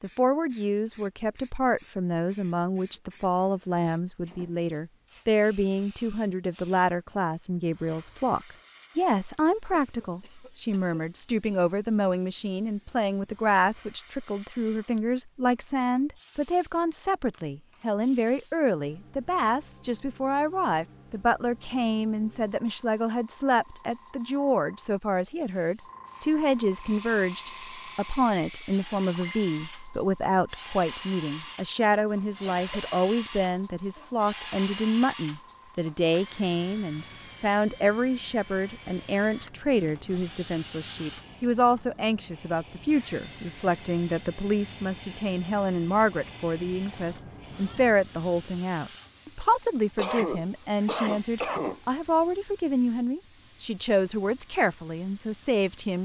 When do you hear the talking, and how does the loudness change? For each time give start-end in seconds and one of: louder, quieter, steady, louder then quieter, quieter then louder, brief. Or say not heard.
0.0-56.0 steady.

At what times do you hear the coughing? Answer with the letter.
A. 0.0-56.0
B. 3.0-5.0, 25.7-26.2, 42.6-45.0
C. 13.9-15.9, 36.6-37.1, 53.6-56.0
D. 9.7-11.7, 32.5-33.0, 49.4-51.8
D.